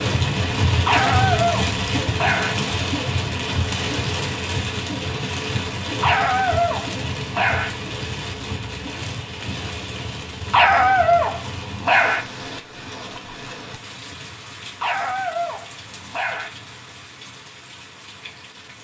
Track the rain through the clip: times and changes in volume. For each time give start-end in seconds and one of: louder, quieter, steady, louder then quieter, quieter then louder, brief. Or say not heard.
0.0-18.8 quieter.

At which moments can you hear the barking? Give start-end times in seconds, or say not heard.
0.8-2.5, 6.0-7.7, 10.5-12.2, 14.8-16.5.